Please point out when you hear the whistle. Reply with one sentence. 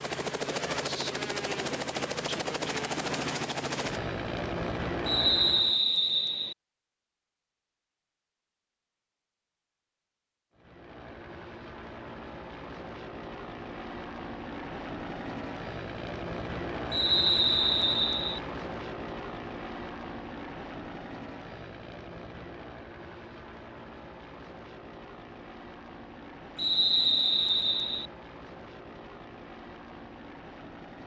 You can hear the whistle from 5.0 to 6.5 s, from 16.9 to 18.4 s and from 26.6 to 28.1 s.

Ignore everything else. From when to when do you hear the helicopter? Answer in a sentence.
You can hear the helicopter from 0.0 to 5.8 s and from 10.5 to 31.0 s.